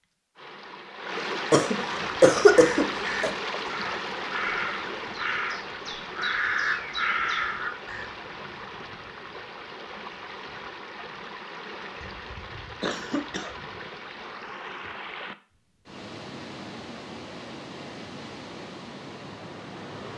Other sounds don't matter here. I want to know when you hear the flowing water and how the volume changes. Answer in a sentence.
You can hear the flowing water from 0.0 to 20.1 s, getting quieter.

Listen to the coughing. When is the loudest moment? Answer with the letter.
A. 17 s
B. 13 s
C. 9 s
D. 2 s
D.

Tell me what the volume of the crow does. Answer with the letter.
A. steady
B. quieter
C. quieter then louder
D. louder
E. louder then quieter
D.